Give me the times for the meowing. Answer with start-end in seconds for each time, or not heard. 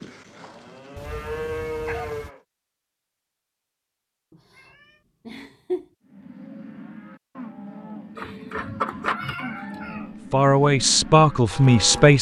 0.9-2.3, 4.3-5.8, 8.2-10.1.